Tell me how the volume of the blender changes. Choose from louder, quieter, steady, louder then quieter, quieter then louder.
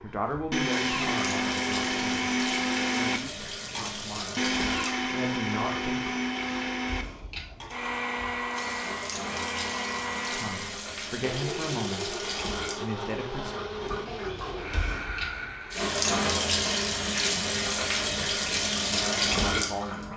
quieter.